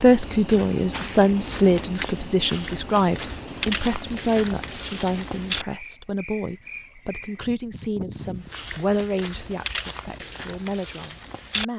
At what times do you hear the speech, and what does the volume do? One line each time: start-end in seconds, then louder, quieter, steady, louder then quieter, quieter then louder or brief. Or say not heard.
0.0-11.7 quieter.